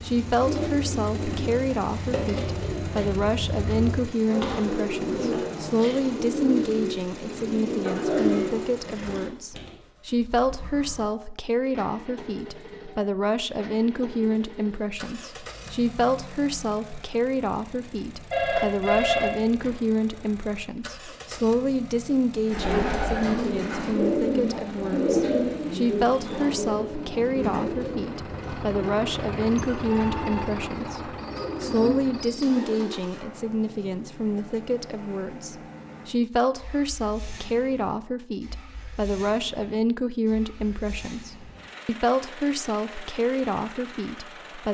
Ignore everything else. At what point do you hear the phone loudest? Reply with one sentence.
The volume of the phone peaks at 19 seconds.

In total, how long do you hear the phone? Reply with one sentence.
The phone can be heard for 2 seconds in total.